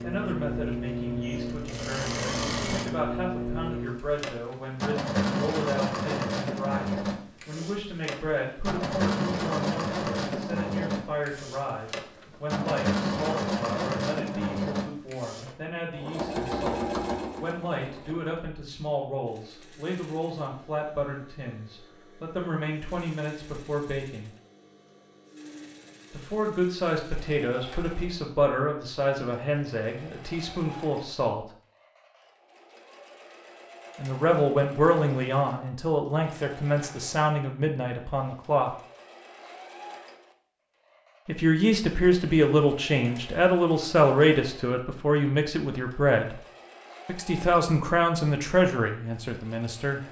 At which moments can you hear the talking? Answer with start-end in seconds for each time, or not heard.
0.0-24.3, 26.1-31.4, 34.0-38.7, 41.2-46.4, 47.0-50.0.